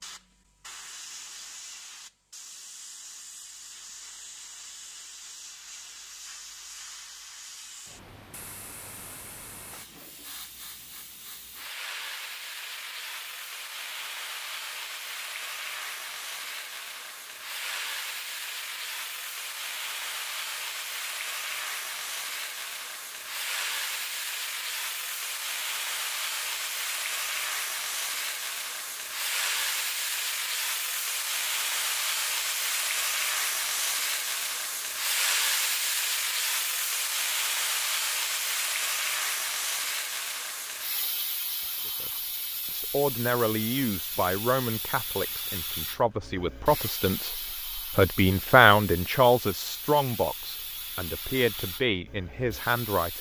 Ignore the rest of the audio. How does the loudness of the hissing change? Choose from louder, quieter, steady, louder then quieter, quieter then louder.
louder then quieter.